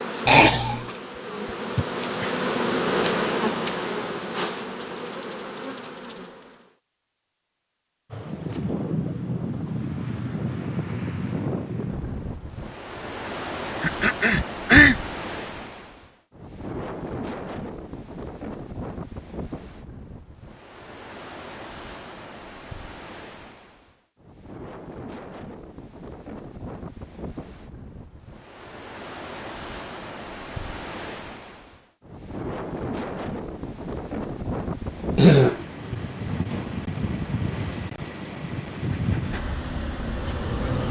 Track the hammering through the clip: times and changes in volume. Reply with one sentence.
The hammering can't be heard in this clip.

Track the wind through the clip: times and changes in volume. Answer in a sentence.
The wind can be heard from 8.1 to 40.8 s, getting quieter then louder.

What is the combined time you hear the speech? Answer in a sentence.
You can't hear the speech here.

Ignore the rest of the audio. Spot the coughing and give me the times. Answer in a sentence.
You can hear the coughing from 0.2 to 0.9 s, from 13.8 to 14.9 s and from 35.1 to 35.6 s.